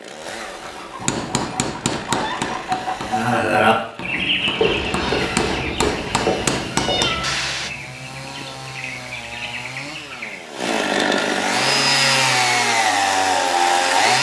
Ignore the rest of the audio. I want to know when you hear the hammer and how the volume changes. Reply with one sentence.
The hammer can be heard from 1.0 to 7.7 s, getting quieter then louder.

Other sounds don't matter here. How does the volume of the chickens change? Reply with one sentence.
The loudness of the chickens goes up, then down.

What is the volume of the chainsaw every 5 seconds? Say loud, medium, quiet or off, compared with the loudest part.
quiet, quiet, loud.